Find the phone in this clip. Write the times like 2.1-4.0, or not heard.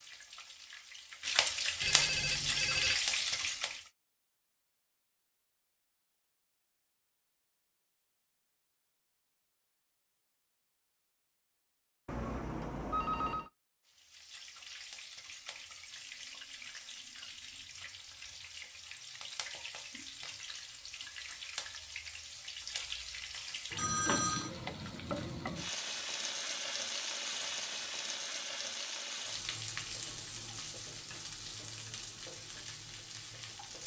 1.8-3.0, 12.1-13.5, 23.8-24.5.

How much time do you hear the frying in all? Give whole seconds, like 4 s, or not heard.
24 s.